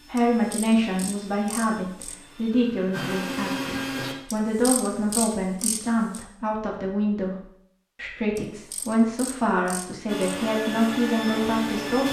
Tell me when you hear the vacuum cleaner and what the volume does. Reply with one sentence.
The vacuum cleaner can be heard from 0.0 to 4.2 s, getting louder; and briefly from 10.1 to 12.0 s.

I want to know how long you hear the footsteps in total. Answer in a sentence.
The footsteps can't be heard in this clip.